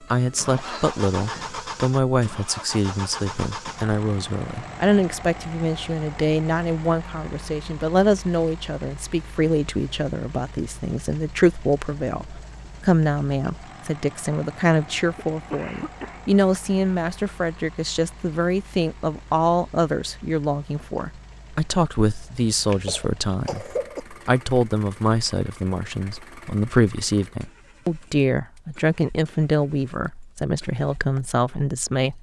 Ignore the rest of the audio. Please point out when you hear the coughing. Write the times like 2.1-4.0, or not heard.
0.1-1.5, 15.2-16.4, 22.6-24.0.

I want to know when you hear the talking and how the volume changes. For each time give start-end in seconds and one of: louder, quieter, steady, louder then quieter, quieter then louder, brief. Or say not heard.
0.1-32.1 steady.